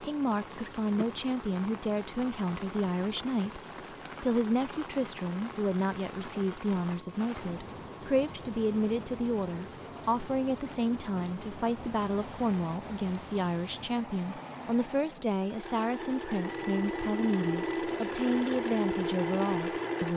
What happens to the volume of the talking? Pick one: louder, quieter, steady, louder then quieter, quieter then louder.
steady.